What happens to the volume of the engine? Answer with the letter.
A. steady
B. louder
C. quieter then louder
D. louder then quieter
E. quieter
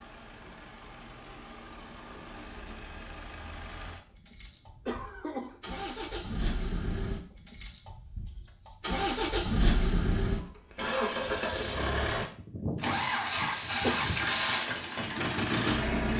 B.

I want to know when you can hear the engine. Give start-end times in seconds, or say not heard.
0.0-16.1.